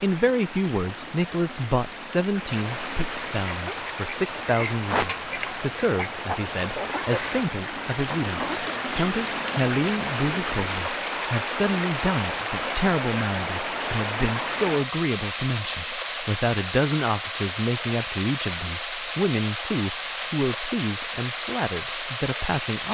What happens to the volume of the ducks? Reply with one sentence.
The loudness of the ducks goes up, then down.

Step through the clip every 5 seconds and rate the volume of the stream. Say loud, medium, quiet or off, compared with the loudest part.
medium, loud, loud, loud, loud.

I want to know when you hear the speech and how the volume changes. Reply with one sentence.
The speech can be heard from 0.0 to 22.8 s, at a steady volume.